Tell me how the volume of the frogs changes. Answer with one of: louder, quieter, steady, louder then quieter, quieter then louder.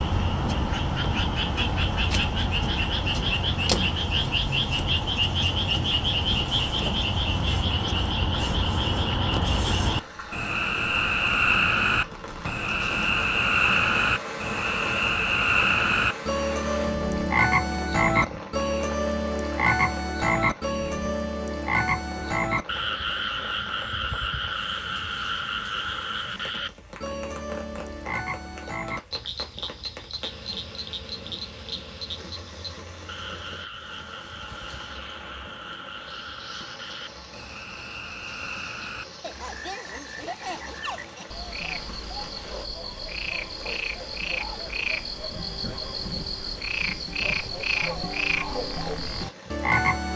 quieter then louder.